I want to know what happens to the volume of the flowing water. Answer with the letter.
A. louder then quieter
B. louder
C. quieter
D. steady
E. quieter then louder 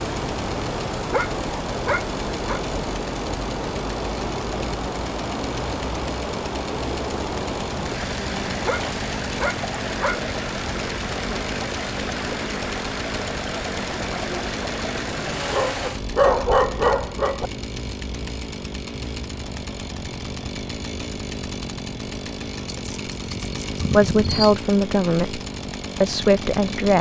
D.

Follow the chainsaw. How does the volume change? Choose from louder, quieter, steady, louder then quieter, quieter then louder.
steady.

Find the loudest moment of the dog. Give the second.
16 s.